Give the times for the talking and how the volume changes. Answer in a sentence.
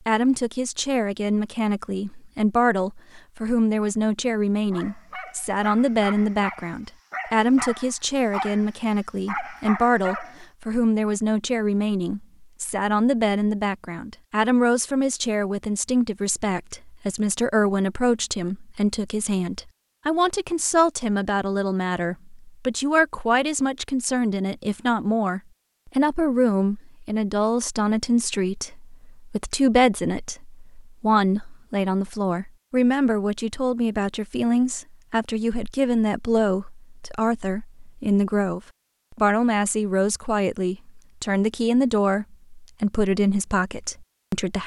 The talking can be heard from 0.1 to 44.6 s, at a steady volume.